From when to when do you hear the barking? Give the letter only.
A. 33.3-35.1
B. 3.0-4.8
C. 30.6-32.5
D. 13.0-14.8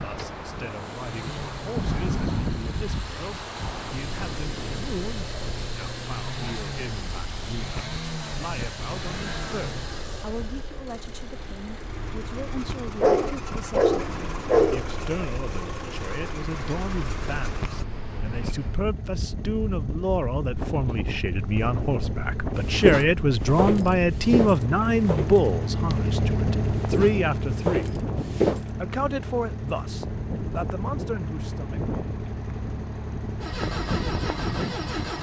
D.